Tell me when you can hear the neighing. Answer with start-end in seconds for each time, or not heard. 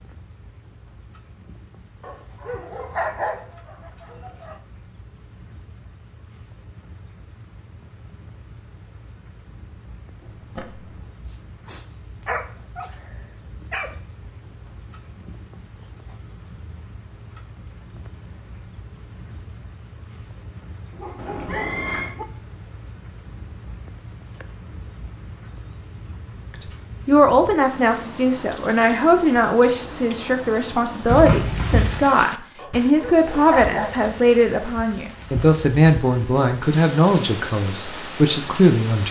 10.2-11.1, 21.1-22.1, 31.1-32.1.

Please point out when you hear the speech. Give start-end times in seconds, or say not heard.
27.1-39.0.